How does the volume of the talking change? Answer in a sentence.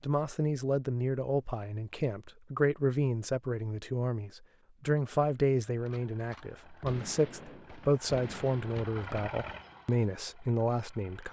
The loudness of the talking stays about the same.